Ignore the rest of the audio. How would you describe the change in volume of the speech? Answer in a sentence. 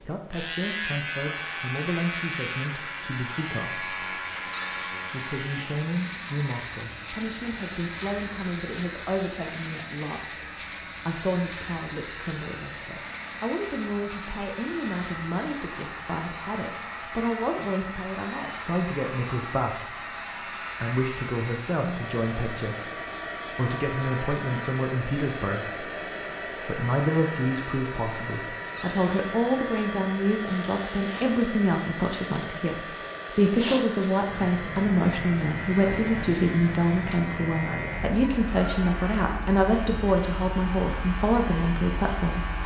The loudness of the speech goes up.